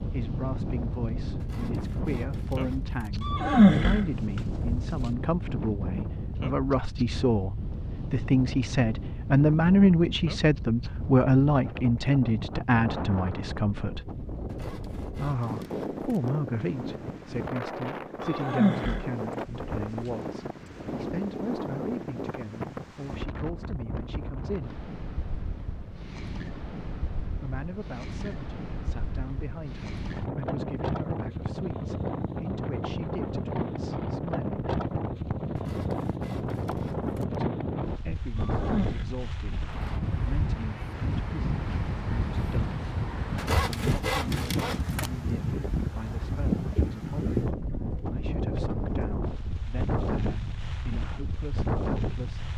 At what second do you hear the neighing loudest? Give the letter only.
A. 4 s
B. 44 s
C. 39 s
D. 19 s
A.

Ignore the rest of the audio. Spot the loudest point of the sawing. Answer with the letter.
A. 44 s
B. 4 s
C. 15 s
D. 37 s
A.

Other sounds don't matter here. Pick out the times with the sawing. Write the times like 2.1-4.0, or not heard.
1.4-3.2, 14.4-16.3, 35.5-37.4, 43.4-45.1.